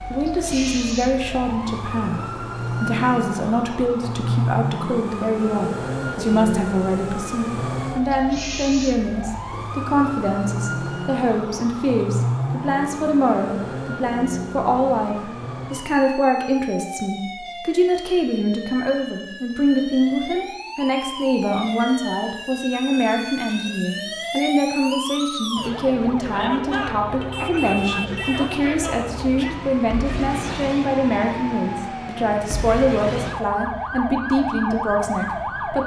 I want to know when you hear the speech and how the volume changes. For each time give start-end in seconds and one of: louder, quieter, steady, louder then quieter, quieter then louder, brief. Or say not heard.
0.1-35.8 steady.